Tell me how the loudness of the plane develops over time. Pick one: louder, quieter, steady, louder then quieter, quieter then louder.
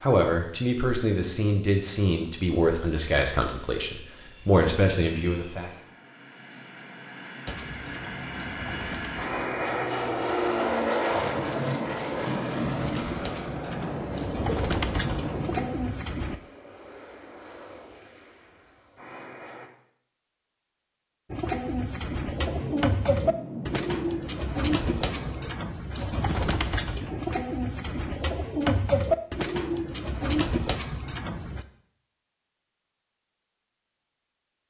louder then quieter.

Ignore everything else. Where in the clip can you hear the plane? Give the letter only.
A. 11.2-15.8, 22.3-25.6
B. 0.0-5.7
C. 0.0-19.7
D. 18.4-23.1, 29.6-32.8
C.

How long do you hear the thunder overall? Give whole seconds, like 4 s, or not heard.
8 s.